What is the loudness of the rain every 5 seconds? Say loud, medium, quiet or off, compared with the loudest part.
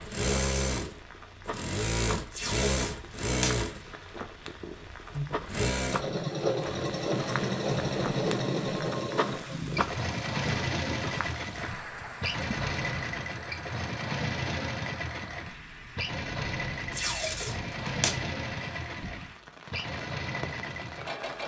medium, loud, loud, medium, medium.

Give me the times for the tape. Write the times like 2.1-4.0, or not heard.
2.3-3.6, 16.9-18.2.